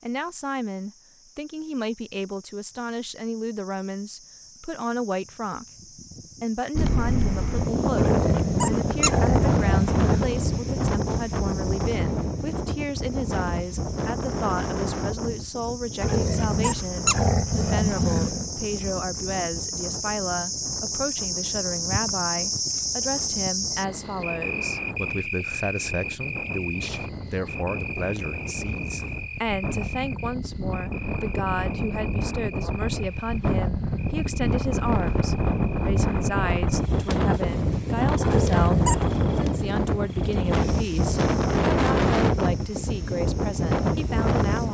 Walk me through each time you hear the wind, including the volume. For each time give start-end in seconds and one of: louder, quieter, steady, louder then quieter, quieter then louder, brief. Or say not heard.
6.8-44.6 quieter then louder.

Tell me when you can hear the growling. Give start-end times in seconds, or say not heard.
8.0-10.2, 16.0-18.5, 38.2-39.1.